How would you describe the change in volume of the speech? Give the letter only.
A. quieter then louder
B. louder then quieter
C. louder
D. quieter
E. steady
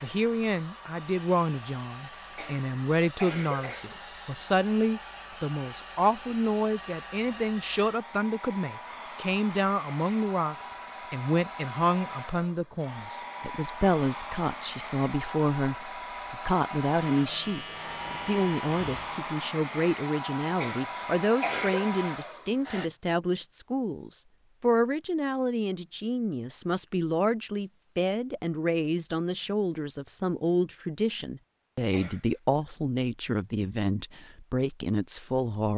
E.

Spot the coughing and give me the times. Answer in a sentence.
You can hear the coughing from 2.4 to 4.0 s, from 20.6 to 21.9 s and from 31.9 to 32.6 s.